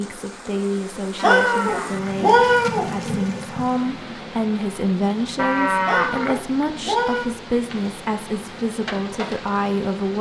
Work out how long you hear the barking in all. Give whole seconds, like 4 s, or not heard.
not heard.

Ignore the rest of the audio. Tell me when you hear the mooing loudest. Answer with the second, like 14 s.
6 s.